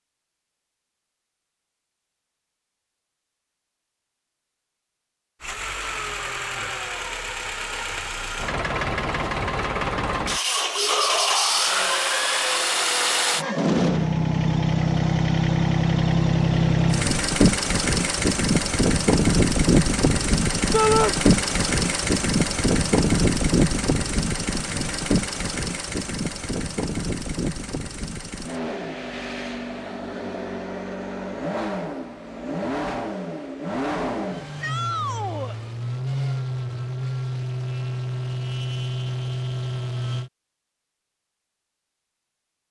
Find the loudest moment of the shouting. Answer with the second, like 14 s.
21 s.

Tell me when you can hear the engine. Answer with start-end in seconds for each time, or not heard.
5.4-40.3.